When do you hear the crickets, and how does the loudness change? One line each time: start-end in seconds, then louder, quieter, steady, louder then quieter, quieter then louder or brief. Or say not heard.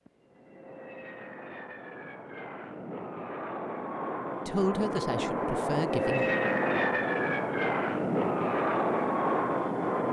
not heard.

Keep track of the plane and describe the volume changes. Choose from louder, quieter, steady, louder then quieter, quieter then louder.
louder.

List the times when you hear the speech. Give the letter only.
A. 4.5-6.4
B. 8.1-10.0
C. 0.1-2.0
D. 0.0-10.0
A.